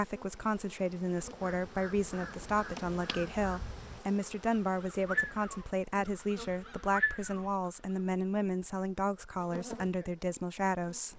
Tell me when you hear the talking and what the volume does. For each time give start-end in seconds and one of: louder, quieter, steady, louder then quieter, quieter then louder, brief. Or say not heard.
0.0-11.1 steady.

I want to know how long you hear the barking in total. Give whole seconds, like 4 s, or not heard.
not heard.